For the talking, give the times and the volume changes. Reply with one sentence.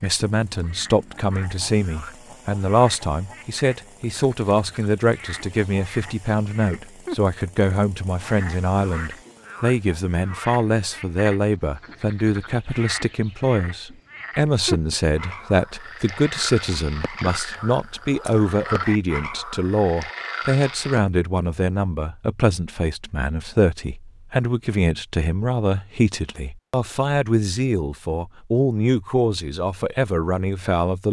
The talking can be heard from 0.0 to 31.0 s, at a steady volume.